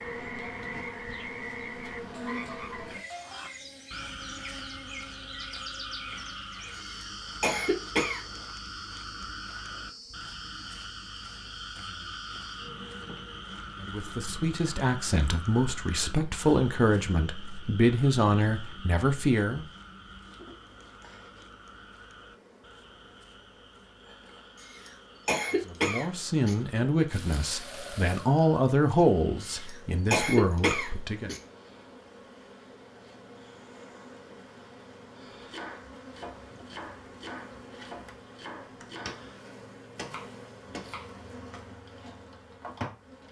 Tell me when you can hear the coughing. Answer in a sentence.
You can hear the coughing from 6.8 to 8.2 s, from 24.6 to 26.6 s and from 29.4 to 31.4 s.